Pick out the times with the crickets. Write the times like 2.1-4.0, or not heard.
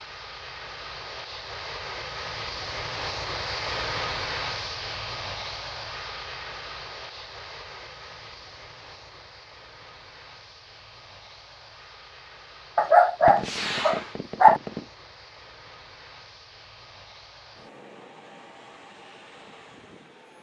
not heard.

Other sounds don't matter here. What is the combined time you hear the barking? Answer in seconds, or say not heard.
2 s.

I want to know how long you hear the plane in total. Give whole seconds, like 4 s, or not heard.
20 s.